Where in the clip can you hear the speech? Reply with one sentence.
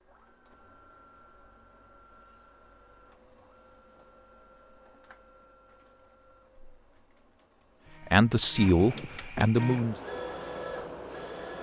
The speech can be heard from 8.1 to 10.0 s.